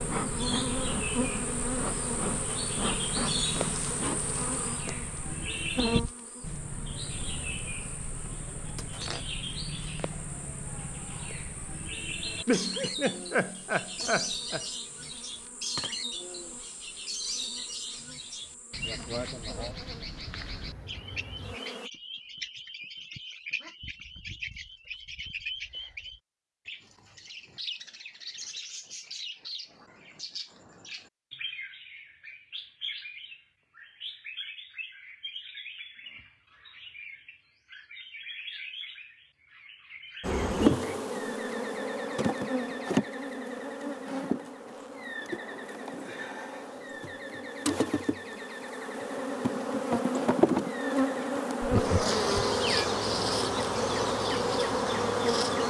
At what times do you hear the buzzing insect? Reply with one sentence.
The buzzing insect can be heard from 0.0 to 21.9 s and from 40.2 to 55.6 s.